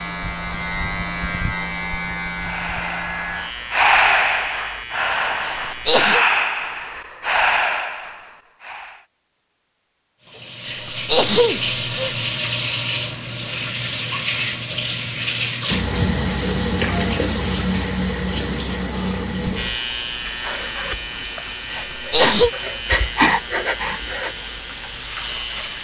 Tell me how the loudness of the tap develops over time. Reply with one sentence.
The volume of the tap goes down.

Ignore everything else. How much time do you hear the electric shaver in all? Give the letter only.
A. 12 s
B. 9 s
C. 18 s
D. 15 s
A.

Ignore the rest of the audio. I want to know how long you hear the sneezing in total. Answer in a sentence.
The sneezing can be heard for 3 seconds in total.